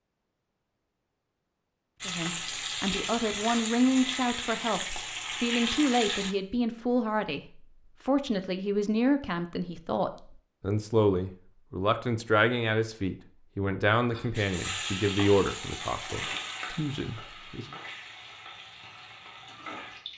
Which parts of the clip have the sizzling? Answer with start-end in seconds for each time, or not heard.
2.0-6.3, 14.3-20.1.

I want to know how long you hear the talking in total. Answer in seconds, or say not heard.
16 s.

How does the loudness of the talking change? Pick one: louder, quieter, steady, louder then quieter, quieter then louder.
steady.